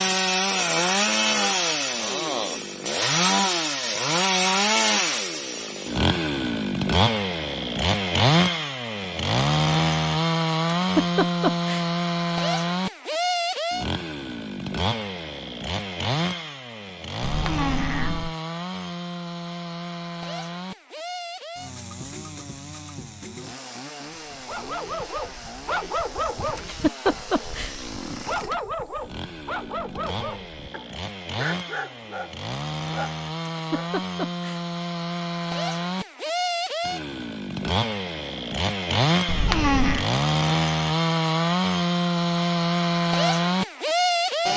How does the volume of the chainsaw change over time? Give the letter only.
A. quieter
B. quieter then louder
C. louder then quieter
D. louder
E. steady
B.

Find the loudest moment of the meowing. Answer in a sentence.
The loudest moment of the meowing is at 40 seconds.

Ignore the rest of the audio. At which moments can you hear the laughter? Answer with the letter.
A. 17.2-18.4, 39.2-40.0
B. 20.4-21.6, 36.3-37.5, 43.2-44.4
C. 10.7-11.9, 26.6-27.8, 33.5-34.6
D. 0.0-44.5
C.